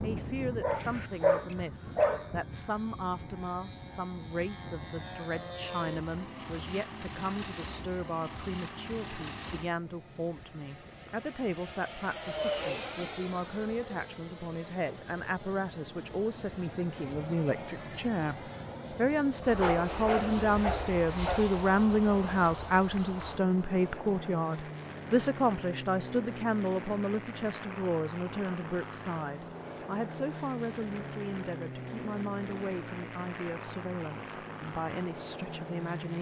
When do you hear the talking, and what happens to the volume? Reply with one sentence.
The talking can be heard from 0.0 to 36.1 s, getting louder then quieter.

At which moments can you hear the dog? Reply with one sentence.
You can hear the dog from 0.6 to 2.2 s and from 19.6 to 21.4 s.